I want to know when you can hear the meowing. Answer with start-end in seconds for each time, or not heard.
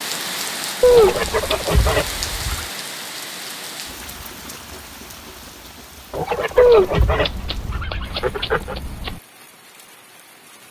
0.8-1.6, 6.5-9.2.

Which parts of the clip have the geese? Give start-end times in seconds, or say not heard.
0.9-2.7, 6.1-8.8.